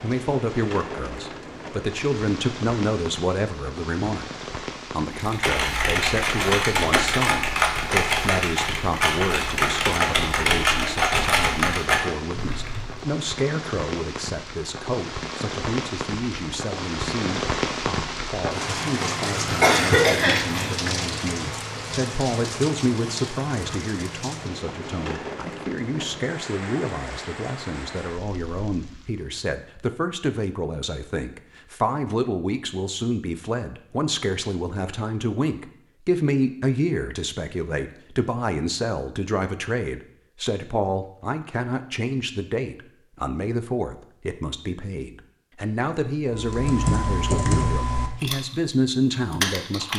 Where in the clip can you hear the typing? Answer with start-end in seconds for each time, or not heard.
5.1-13.1, 46.3-49.9.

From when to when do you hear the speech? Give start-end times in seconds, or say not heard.
0.0-4.2, 4.9-49.9.